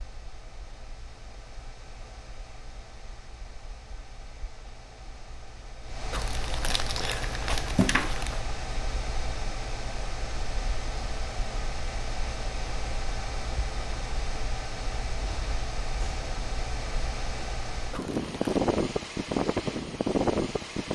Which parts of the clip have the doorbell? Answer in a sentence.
You can't hear the doorbell here.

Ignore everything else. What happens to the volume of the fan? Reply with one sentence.
The volume of the fan goes up.